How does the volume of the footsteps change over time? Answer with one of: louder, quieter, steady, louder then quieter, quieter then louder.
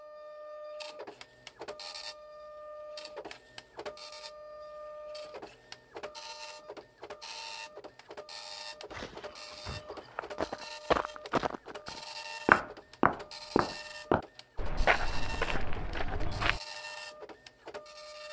louder then quieter.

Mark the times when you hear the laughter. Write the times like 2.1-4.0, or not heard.
not heard.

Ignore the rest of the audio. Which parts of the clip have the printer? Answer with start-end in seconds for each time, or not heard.
0.0-18.2.